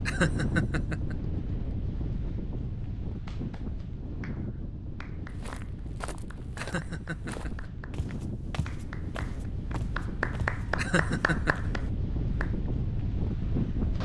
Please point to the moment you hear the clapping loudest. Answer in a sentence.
The loudest moment of the clapping is at 10 seconds.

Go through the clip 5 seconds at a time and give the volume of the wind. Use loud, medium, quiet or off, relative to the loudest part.
loud, medium, loud.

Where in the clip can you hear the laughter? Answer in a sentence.
You can hear the laughter from 0.1 to 1.1 s, from 6.5 to 7.7 s and from 10.8 to 11.6 s.